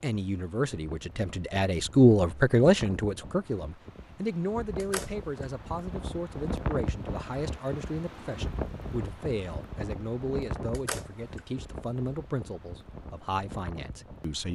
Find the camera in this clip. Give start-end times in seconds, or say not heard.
4.8-5.5, 10.7-11.4.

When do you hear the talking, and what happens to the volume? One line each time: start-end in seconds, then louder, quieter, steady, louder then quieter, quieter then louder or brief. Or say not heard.
0.0-14.5 quieter.